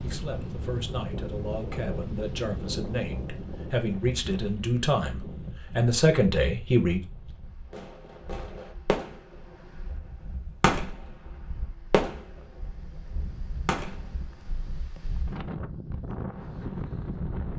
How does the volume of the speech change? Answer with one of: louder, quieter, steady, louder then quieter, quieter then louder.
louder.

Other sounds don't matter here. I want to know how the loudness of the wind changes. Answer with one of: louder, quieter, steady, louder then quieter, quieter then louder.
quieter then louder.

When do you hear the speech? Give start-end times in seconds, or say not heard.
0.0-7.0.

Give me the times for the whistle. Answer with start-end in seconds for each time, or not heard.
not heard.